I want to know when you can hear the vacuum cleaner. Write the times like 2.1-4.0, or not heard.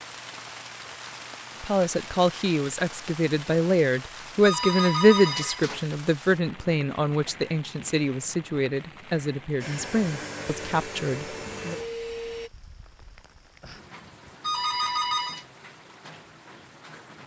9.6-12.5.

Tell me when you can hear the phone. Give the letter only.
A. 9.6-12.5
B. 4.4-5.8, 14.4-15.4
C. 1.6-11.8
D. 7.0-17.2
B.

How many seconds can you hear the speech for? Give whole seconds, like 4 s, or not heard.
10 s.